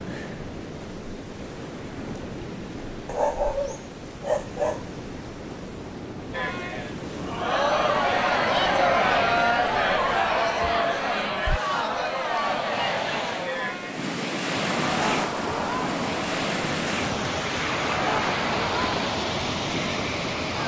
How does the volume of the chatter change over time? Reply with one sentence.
The volume of the chatter goes down.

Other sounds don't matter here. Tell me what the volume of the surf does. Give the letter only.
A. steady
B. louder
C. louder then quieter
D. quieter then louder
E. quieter
B.